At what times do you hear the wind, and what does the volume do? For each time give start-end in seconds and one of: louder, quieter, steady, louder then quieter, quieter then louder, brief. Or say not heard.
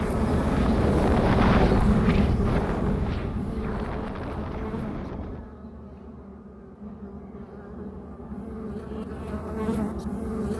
0.0-5.5 quieter.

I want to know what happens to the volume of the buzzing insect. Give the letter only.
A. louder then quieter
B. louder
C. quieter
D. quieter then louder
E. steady
D.